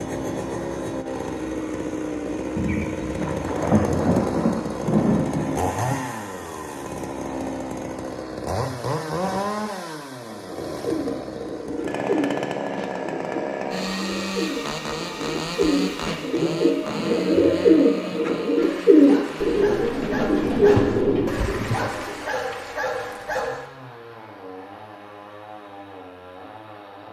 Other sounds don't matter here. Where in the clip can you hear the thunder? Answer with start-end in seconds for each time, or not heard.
2.5-6.0, 20.4-21.9.